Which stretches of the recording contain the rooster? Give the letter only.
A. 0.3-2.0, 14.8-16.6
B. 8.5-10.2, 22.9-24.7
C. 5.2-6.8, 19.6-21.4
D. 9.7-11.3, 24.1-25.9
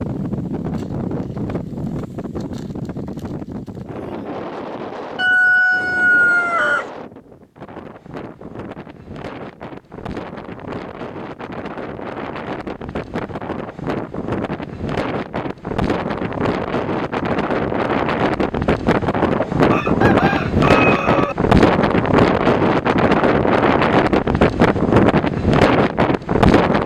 C.